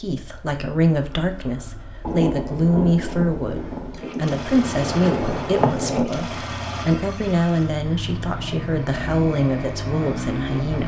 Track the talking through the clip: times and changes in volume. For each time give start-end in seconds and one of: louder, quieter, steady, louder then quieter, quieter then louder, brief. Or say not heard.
0.0-10.8 steady.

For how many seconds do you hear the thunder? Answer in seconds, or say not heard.
4 s.